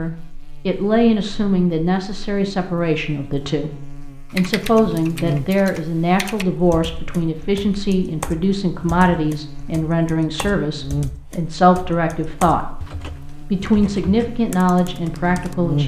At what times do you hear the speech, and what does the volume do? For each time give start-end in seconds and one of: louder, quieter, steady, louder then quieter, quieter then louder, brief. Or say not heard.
0.0-12.8 steady
13.5-15.8 brief.